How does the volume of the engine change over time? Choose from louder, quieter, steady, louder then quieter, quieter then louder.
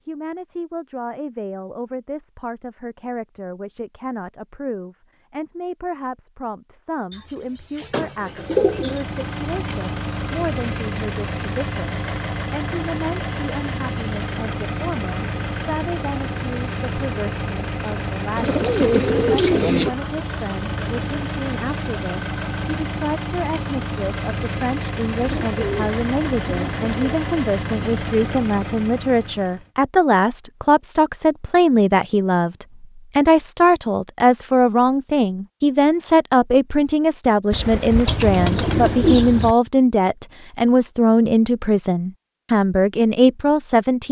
steady.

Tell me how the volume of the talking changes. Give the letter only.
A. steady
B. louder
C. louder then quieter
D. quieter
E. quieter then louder
B.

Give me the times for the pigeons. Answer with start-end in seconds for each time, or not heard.
7.1-9.0, 18.4-19.9, 25.2-26.9, 37.5-39.5.